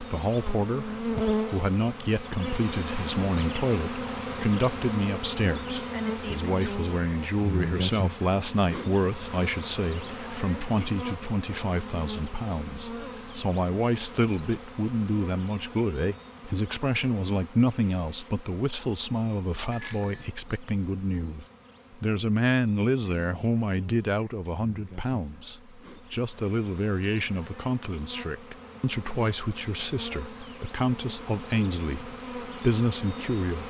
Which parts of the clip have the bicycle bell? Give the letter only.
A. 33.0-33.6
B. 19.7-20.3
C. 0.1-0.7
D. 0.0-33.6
B.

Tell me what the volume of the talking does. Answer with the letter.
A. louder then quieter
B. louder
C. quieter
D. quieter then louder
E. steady
E.